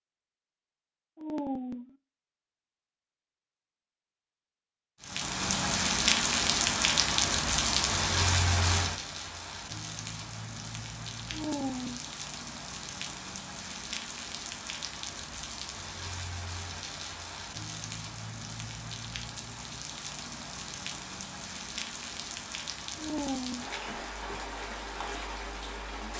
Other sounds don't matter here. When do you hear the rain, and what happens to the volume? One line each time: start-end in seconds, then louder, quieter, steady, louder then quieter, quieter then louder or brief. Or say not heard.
5.0-26.1 quieter.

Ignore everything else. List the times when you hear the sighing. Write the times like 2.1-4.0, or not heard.
1.1-1.9, 11.3-12.1, 22.9-23.8.